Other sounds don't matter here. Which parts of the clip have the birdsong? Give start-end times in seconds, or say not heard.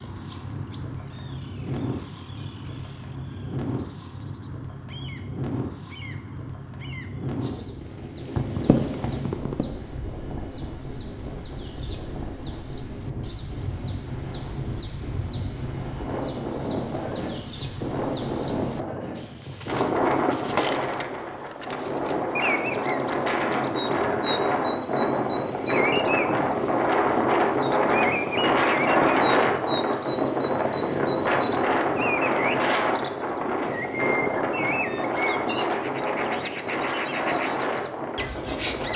0.0-38.9.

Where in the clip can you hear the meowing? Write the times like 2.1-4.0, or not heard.
8.3-9.7.